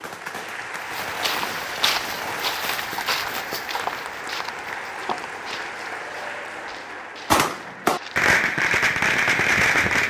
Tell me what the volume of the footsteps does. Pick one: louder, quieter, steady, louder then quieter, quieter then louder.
quieter.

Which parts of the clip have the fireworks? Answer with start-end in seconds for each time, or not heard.
0.0-2.6, 7.3-10.0.